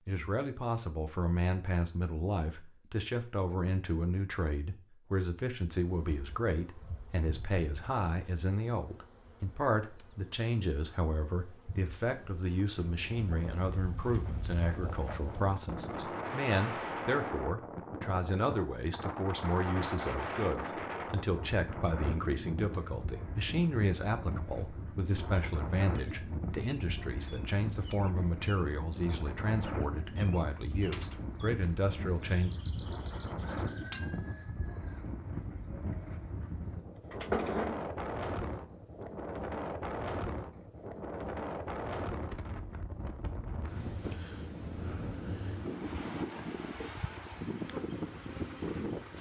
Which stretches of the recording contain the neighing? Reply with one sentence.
The neighing can't be heard in this clip.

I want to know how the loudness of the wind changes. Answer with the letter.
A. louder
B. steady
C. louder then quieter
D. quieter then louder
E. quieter
B.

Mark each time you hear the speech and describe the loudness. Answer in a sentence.
The speech can be heard from 0.1 to 32.5 s, at a steady volume.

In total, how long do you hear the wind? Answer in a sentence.
You can hear the wind for 36 seconds altogether.